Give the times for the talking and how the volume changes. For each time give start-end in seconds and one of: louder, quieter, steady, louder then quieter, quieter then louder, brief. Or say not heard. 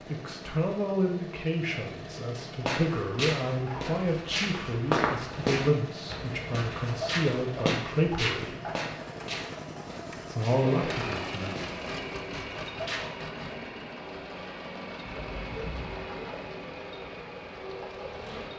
0.0-8.6 steady
10.2-11.6 brief.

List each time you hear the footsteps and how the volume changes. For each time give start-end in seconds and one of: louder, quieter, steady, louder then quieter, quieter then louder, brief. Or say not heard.
2.6-13.1 quieter.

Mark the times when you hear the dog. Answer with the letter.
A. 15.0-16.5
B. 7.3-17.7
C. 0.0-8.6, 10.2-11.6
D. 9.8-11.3
A.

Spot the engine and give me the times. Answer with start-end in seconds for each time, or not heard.
0.0-18.5.